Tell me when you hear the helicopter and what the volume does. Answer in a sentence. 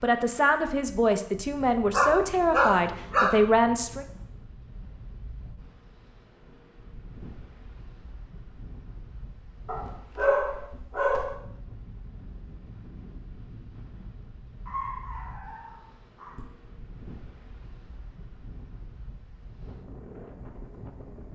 You can't hear the helicopter here.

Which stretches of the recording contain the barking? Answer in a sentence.
You can hear the barking from 1.9 to 3.3 s, from 9.7 to 11.3 s and from 14.7 to 16.4 s.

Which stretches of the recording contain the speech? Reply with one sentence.
The speech can be heard from 0.0 to 4.0 s.